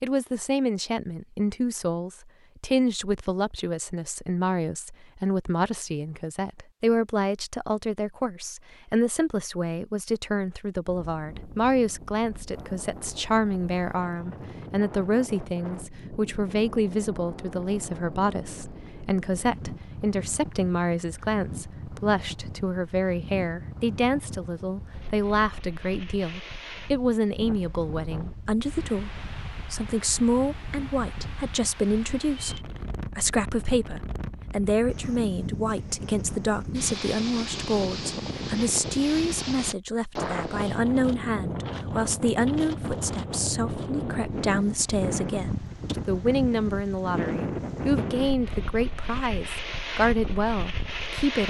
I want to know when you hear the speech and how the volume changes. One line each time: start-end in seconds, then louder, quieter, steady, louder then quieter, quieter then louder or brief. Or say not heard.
0.0-51.4 steady.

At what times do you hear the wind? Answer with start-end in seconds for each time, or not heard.
10.8-51.4.